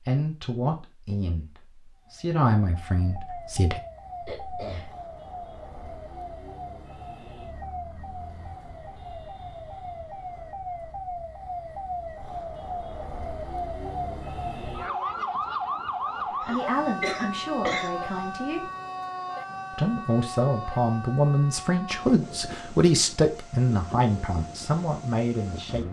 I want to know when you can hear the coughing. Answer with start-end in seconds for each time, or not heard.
4.2-5.0, 16.4-18.2.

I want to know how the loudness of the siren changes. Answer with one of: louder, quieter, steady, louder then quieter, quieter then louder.
louder then quieter.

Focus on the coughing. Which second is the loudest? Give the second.
17 s.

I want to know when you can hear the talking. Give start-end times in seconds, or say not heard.
0.1-3.8, 16.4-18.7, 19.7-25.8.